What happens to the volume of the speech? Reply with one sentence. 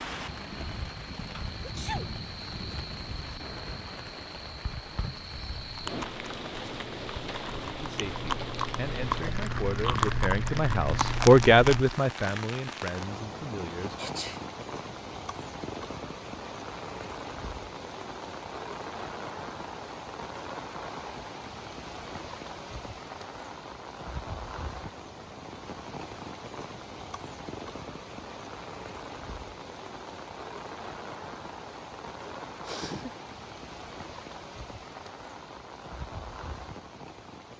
The loudness of the speech goes up, then down.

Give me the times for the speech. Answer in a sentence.
You can hear the speech from 7.8 to 14.1 s.